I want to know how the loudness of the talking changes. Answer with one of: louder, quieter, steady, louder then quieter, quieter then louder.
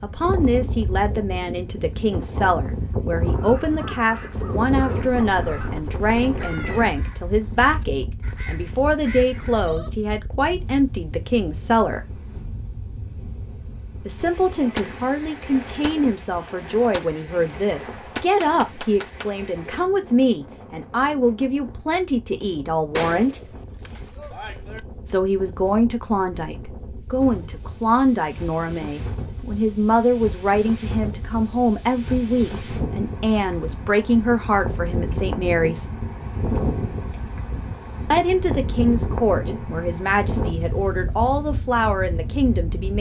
steady.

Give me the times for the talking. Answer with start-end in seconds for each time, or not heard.
0.0-12.0, 14.1-23.4, 25.1-35.9, 38.1-42.9.